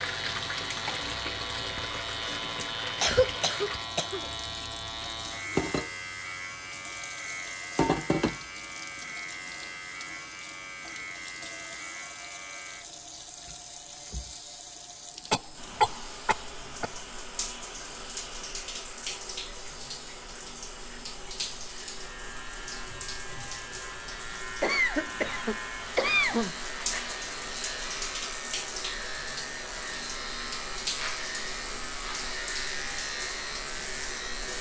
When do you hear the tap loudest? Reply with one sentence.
The volume of the tap peaks at 8 seconds.